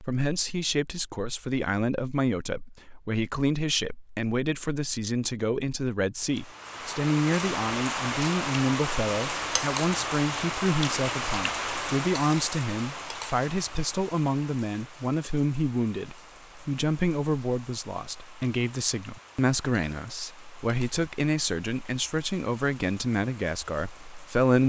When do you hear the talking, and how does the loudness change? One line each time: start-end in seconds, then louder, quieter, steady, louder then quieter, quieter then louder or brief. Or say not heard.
0.0-24.6 steady.